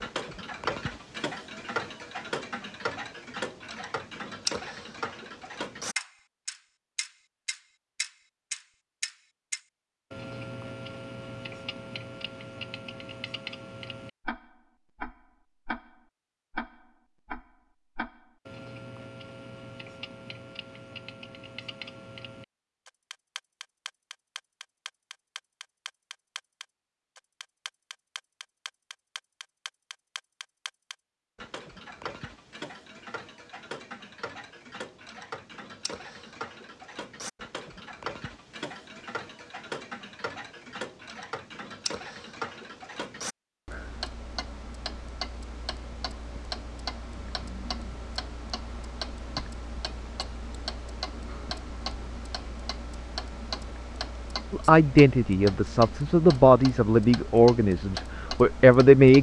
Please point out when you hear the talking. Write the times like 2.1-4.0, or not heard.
54.5-59.1.